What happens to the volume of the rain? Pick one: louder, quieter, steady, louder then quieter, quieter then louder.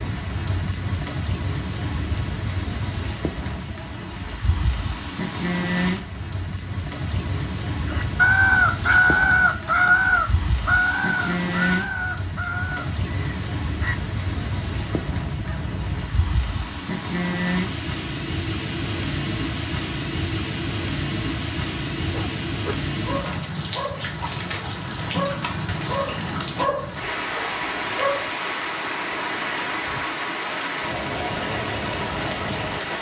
steady.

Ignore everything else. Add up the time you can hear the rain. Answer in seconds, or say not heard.
33 s.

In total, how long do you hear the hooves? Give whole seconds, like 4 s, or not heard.
not heard.